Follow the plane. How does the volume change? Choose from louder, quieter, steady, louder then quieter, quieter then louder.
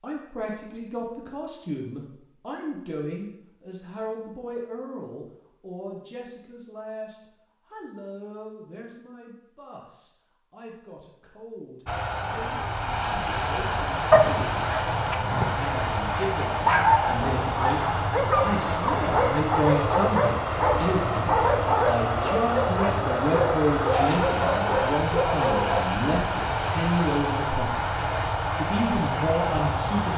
steady.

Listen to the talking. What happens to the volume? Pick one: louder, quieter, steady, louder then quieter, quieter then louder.
quieter then louder.